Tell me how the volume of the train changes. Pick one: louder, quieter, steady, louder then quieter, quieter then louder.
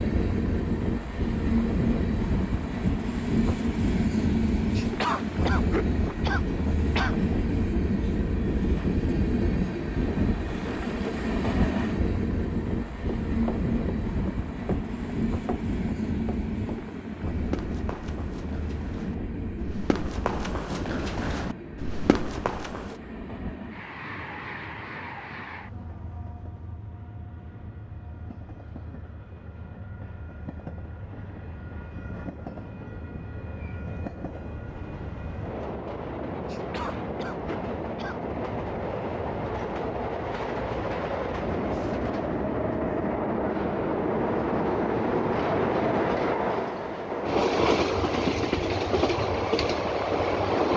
quieter then louder.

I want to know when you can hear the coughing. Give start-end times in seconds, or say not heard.
4.8-7.2, 36.5-38.3.